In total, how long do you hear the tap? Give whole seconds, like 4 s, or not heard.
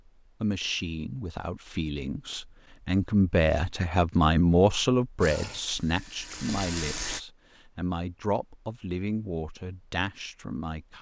2 s.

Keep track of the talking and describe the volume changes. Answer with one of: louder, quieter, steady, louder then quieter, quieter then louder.
louder then quieter.